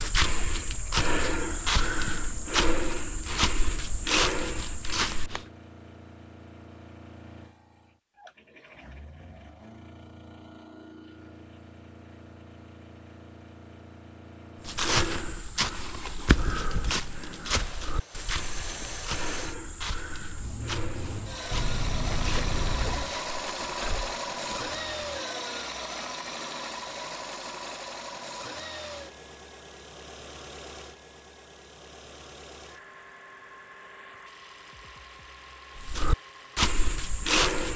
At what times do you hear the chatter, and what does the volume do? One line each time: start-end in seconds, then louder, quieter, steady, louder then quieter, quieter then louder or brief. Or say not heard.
not heard.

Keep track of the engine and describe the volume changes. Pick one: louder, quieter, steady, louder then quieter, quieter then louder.
louder then quieter.